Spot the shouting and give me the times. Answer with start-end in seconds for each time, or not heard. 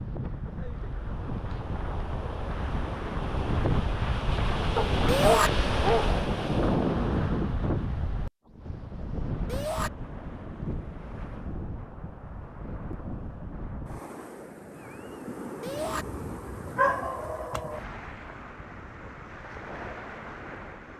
5.0-5.5, 9.4-9.9, 15.6-16.1.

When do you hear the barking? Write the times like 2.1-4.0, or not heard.
4.8-6.1, 16.8-17.8.